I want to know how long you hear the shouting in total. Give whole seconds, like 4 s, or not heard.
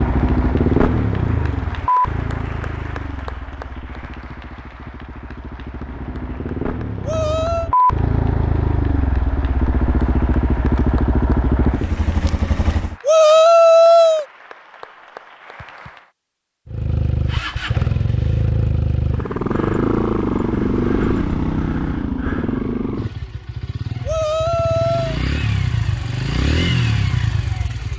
3 s.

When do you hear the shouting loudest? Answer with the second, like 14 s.
14 s.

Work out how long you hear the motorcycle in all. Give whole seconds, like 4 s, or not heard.
24 s.